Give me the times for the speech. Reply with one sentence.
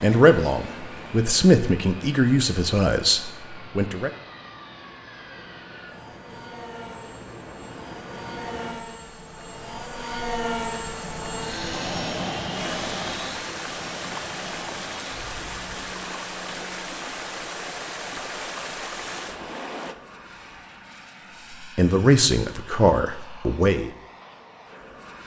You can hear the speech from 0.0 to 4.1 s and from 21.8 to 23.9 s.